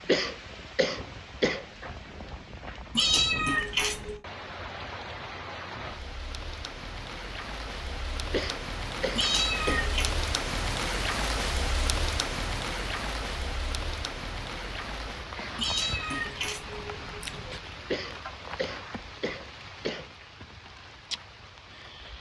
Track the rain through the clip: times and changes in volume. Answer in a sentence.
You can hear the rain from 0.0 to 22.1 s, getting louder then quieter.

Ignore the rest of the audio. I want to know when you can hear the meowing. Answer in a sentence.
You can hear the meowing from 3.0 to 4.2 s, from 9.2 to 10.2 s and from 15.6 to 17.6 s.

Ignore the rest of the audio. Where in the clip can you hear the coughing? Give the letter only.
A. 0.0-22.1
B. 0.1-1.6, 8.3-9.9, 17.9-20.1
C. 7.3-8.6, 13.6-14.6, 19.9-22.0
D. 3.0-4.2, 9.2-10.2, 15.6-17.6
B.